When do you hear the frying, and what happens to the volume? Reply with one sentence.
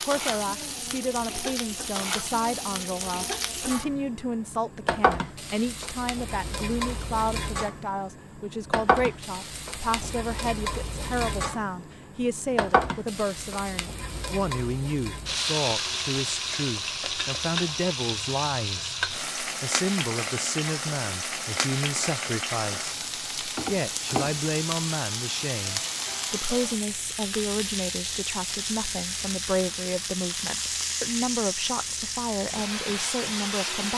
The frying can be heard from 0.0 to 33.9 s, at a steady volume.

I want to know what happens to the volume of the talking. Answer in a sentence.
The volume of the talking stays about the same.